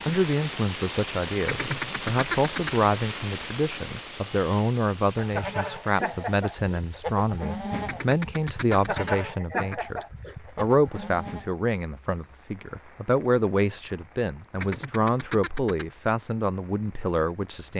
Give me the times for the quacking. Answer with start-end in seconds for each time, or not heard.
1.4-2.9, 7.8-9.9, 14.6-15.8.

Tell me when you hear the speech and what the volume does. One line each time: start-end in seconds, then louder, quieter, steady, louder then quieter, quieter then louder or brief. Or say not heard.
0.1-17.7 steady.